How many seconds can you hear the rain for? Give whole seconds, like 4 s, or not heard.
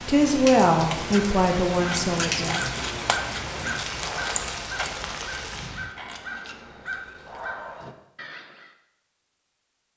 6 s.